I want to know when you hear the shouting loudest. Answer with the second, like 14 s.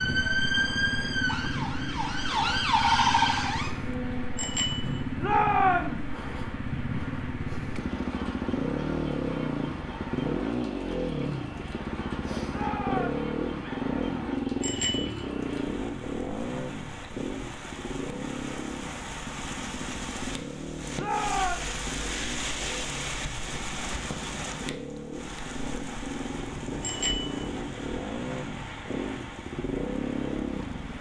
6 s.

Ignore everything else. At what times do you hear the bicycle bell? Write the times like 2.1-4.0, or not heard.
4.3-5.0, 14.6-15.2, 26.8-27.4.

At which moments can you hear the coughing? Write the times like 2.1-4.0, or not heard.
not heard.